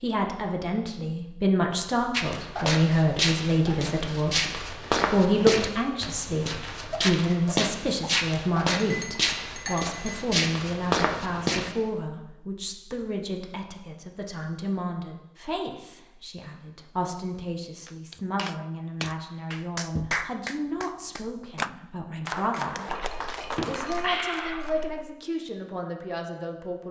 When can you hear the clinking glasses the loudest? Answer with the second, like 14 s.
24 s.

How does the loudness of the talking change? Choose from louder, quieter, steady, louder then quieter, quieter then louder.
quieter.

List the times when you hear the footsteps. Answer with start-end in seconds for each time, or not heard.
2.1-11.7.